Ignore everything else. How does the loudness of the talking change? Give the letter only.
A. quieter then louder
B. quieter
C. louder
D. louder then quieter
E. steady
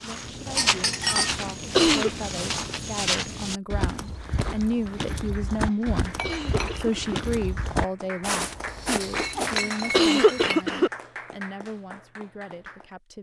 D.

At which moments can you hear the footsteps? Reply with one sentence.
You can hear the footsteps from 0.0 to 9.6 s.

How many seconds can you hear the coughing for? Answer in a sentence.
The coughing can be heard for 4 seconds in total.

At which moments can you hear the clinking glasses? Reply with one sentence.
You can hear the clinking glasses from 0.5 to 1.3 s, from 6.2 to 7.0 s and from 9.1 to 10.7 s.